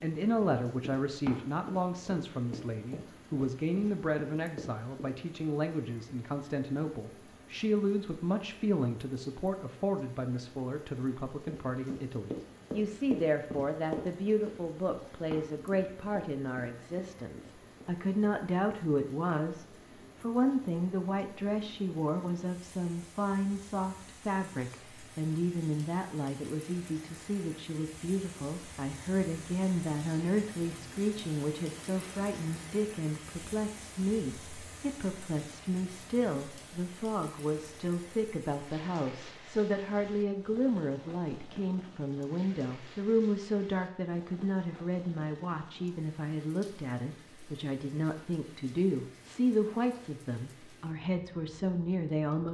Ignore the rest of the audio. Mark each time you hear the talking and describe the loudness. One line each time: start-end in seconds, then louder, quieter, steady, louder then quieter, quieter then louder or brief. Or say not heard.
0.0-52.4 steady.